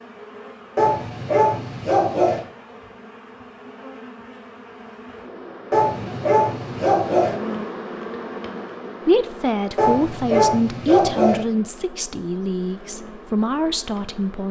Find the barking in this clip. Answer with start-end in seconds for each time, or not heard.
0.8-2.4, 5.7-7.3, 9.8-11.4.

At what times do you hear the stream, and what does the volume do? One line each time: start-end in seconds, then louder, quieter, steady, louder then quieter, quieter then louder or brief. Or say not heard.
not heard.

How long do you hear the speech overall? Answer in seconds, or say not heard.
5 s.